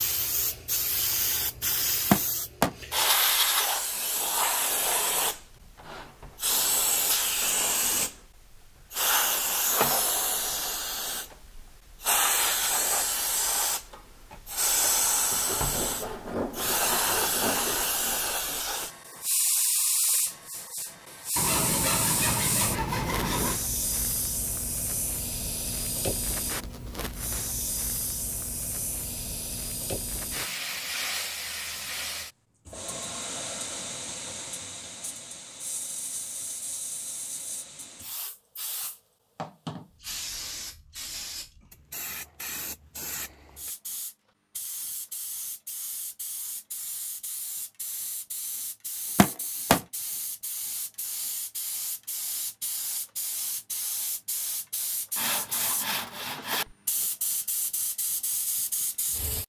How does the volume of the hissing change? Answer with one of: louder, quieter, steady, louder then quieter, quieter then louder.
quieter.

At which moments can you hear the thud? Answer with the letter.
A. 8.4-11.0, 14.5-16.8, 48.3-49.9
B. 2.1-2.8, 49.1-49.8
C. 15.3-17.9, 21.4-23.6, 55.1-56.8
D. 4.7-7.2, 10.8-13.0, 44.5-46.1
B.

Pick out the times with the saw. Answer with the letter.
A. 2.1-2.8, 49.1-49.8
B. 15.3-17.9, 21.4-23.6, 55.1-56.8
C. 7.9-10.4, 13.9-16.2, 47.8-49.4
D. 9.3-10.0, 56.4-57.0
B.